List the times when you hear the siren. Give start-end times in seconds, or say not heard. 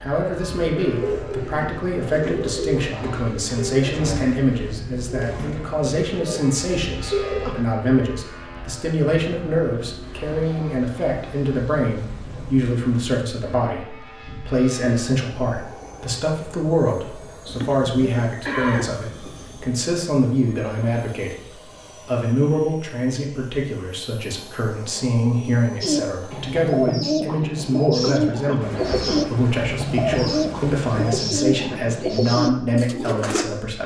not heard.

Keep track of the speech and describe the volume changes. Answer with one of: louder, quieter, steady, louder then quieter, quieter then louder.
steady.